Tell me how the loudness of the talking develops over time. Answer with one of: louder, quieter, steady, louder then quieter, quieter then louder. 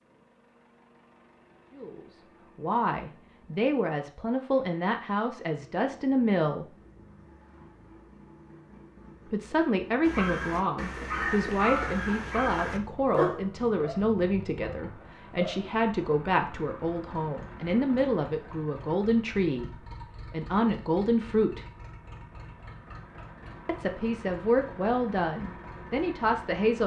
steady.